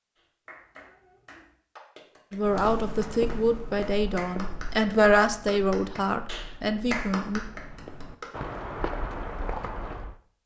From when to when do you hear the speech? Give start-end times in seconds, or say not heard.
2.3-7.4.